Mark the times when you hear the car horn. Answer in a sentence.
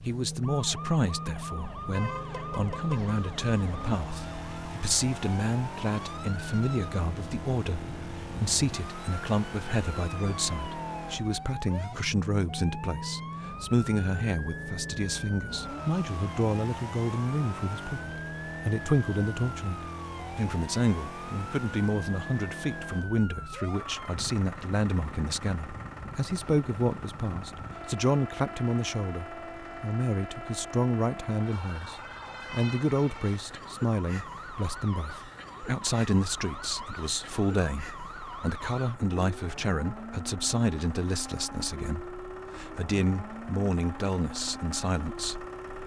You can hear the car horn from 1.9 to 3.1 s.